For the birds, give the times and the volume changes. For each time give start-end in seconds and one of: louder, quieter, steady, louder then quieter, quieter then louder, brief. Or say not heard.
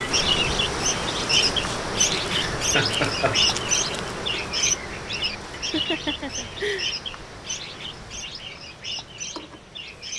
0.0-10.1 quieter.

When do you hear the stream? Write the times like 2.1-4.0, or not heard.
0.0-10.1.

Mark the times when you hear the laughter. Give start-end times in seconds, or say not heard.
2.3-3.4, 5.5-7.0.